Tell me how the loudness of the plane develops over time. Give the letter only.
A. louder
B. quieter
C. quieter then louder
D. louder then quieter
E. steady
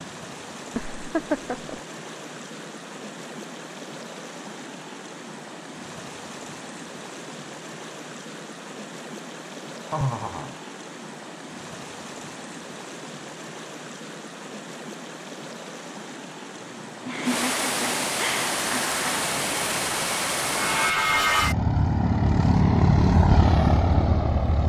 A.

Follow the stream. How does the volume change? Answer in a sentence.
The volume of the stream goes up.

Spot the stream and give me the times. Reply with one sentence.
You can hear the stream from 0.0 to 20.9 s.